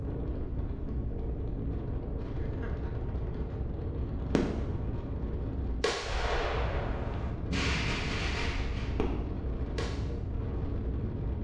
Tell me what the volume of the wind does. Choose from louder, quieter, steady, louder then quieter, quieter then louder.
steady.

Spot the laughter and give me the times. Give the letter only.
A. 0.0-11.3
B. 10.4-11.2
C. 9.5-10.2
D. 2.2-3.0
D.